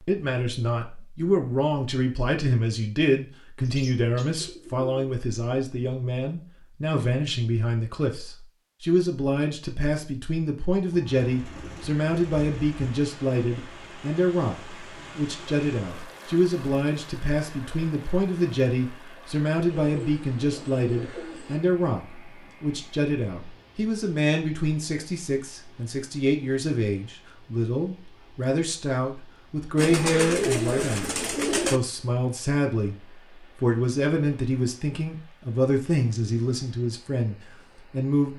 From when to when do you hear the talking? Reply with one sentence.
You can hear the talking from 0.1 to 33.0 s and from 33.6 to 38.3 s.